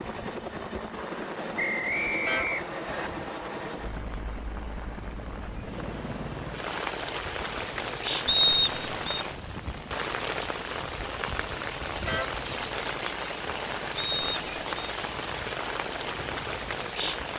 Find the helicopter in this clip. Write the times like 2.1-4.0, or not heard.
0.0-17.3.